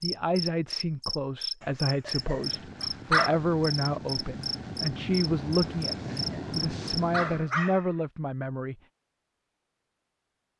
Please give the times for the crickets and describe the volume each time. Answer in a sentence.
The crickets can be heard from 0.0 to 7.0 s, at a steady volume.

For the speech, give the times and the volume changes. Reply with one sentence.
You can hear the speech from 0.0 to 8.8 s, at a steady volume.